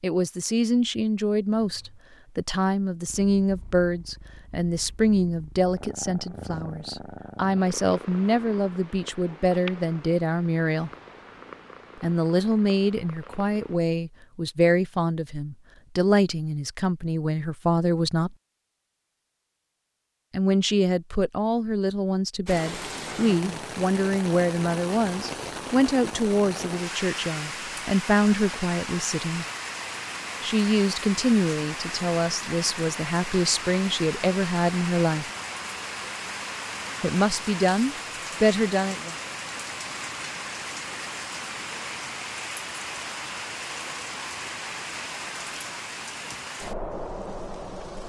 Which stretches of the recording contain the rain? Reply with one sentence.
You can hear the rain from 22.4 to 48.0 s.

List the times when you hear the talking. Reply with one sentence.
The talking can be heard from 0.0 to 10.9 s, from 12.0 to 18.4 s, from 20.3 to 29.4 s, from 30.4 to 35.3 s and from 37.0 to 39.1 s.